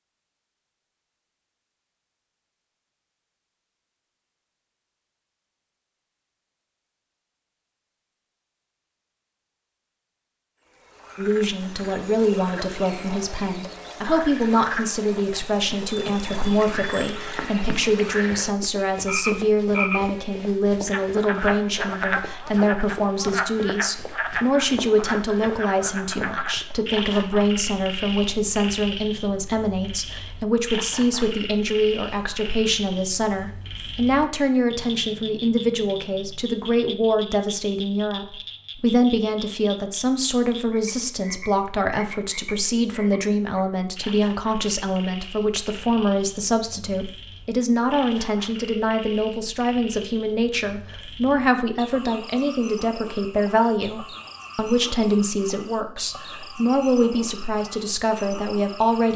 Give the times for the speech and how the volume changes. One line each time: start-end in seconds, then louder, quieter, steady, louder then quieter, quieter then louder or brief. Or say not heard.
11.2-59.1 steady.